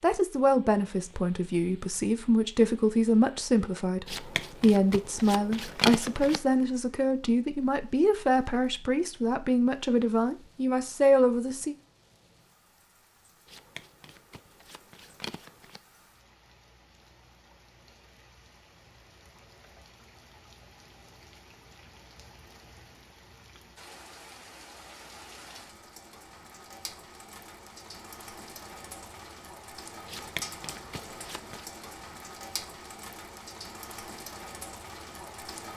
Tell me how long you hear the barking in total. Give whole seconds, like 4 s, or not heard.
not heard.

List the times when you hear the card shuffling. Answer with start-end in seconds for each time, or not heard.
4.0-6.4, 13.4-15.8, 30.1-31.6.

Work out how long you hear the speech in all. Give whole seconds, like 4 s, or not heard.
12 s.